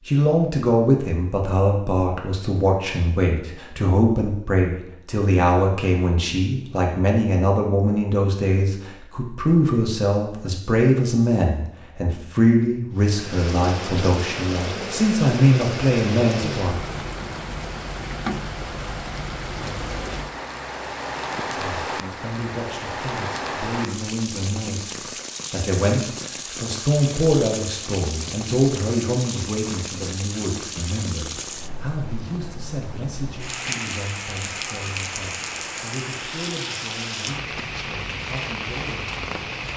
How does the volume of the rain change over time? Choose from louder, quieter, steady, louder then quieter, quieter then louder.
steady.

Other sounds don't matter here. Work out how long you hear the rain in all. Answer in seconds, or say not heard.
27 s.